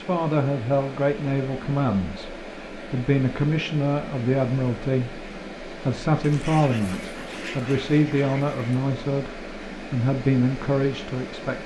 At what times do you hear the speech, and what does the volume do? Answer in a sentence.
The speech can be heard from 0.0 to 11.6 s, at a steady volume.